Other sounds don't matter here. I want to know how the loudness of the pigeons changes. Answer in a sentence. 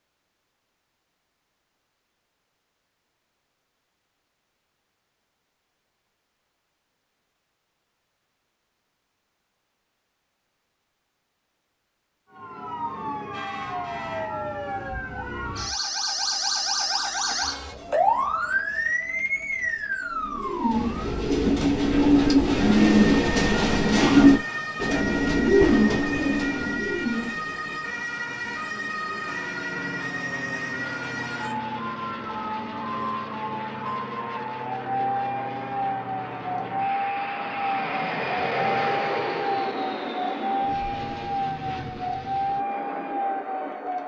The volume of the pigeons goes up, then down.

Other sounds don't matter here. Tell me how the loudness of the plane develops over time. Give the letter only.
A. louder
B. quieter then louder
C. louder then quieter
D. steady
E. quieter
C.